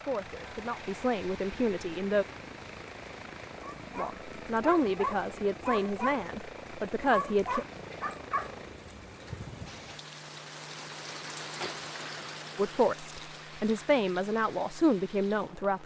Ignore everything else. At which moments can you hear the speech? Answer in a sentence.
The speech can be heard from 0.0 to 2.2 s, from 4.0 to 7.7 s and from 12.6 to 15.8 s.